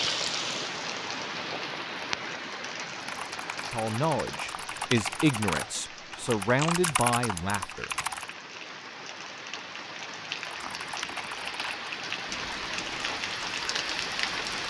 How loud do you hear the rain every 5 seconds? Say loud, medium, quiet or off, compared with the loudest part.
loud, medium, loud.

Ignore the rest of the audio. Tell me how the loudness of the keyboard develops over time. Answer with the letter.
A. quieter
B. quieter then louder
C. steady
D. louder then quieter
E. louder
D.